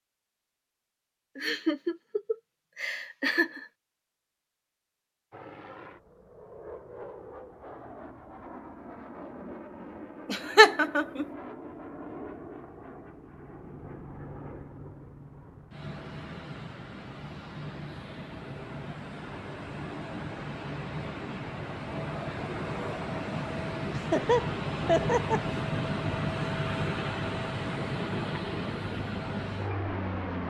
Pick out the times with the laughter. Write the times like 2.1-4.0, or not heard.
1.4-3.6, 10.3-11.2, 23.9-25.5.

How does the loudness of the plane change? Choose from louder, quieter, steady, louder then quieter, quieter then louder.
louder.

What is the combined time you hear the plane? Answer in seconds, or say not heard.
25 s.